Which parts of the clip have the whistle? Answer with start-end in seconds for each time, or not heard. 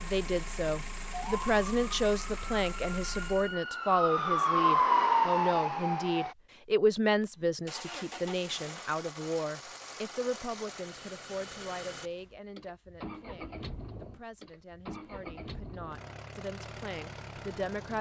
not heard.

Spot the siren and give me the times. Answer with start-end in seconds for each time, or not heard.
0.0-6.3.